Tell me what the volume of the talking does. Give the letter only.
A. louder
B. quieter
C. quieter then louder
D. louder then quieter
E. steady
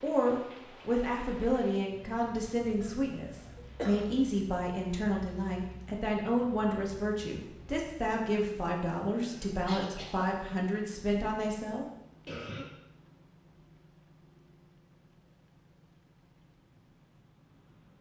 E.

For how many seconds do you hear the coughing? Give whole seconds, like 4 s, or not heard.
3 s.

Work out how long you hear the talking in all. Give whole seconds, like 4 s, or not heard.
12 s.